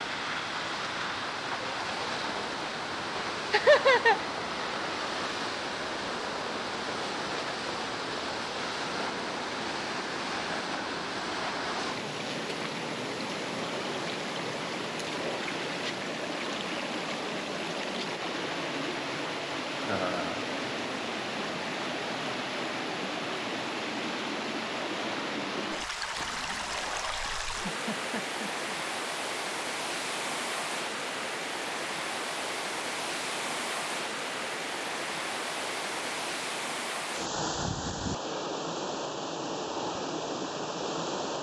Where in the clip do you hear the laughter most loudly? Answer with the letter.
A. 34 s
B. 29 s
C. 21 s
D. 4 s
D.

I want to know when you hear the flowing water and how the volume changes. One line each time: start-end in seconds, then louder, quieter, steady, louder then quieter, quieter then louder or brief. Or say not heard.
0.0-41.3 steady.